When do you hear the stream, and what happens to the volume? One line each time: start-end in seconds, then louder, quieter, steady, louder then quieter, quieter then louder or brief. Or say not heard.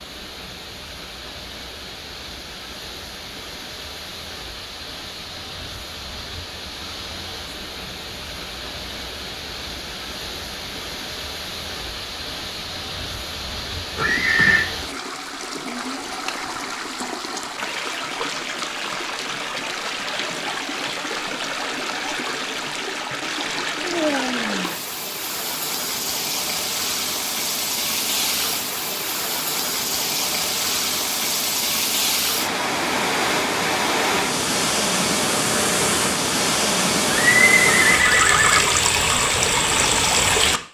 0.0-40.6 louder.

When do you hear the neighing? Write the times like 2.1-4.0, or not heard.
13.9-14.7, 37.1-38.6.